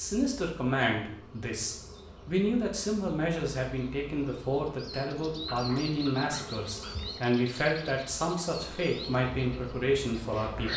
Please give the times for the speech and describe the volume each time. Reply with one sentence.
The speech can be heard from 0.0 to 10.7 s, at a steady volume.